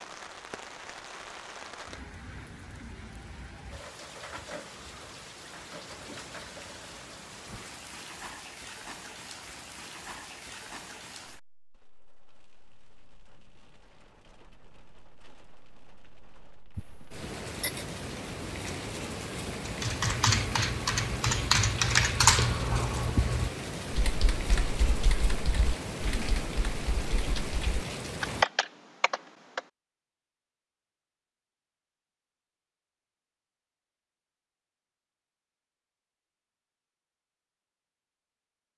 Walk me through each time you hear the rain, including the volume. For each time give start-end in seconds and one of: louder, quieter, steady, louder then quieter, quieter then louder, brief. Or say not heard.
0.0-28.4 quieter then louder.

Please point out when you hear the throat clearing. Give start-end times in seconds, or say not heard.
16.8-17.9.